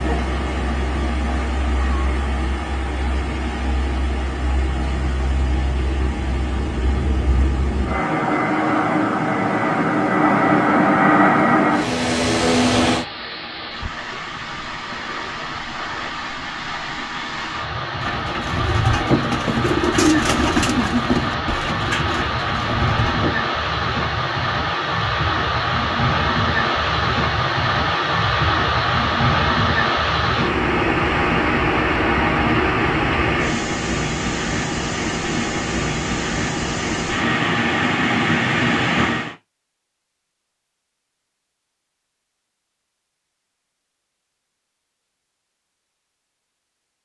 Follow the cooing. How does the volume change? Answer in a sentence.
The volume of the cooing goes down.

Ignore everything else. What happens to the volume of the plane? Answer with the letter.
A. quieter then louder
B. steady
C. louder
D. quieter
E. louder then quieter
C.